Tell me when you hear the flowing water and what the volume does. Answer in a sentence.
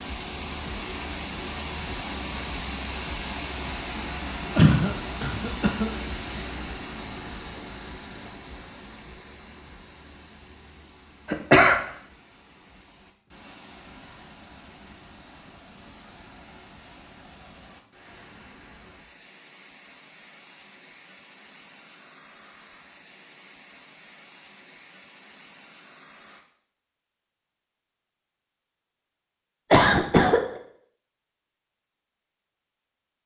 You can hear the flowing water from 0.0 to 26.4 s, getting quieter.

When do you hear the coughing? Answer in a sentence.
The coughing can be heard from 4.5 to 5.9 s, from 11.3 to 11.8 s and from 29.7 to 30.4 s.